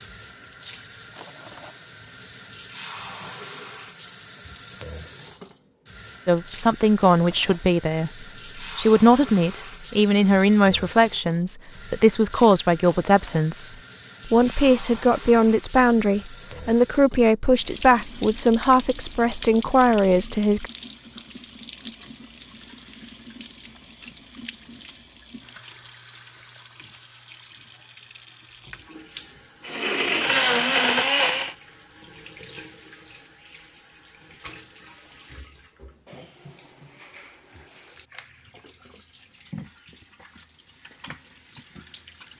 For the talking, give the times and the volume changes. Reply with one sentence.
The talking can be heard from 6.2 to 20.7 s, at a steady volume.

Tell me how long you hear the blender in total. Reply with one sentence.
The blender can be heard for 2 seconds in total.